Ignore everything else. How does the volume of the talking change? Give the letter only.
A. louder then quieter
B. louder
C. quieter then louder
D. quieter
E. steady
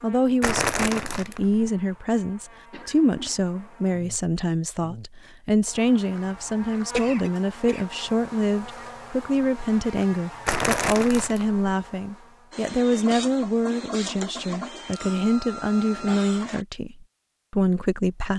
E.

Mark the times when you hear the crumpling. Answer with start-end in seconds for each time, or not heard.
0.4-1.6, 10.4-11.5.